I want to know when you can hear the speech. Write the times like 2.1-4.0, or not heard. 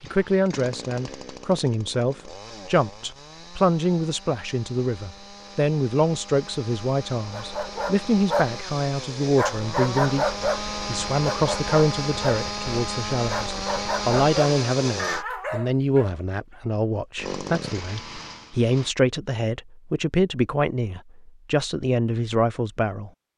0.0-23.1.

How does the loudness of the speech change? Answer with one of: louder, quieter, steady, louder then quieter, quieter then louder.
steady.